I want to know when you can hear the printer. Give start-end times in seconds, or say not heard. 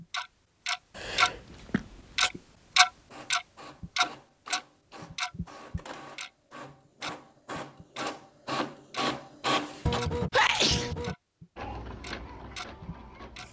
2.8-13.4.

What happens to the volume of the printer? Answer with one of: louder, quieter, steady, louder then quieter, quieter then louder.
louder then quieter.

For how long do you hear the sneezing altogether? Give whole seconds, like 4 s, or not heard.
2 s.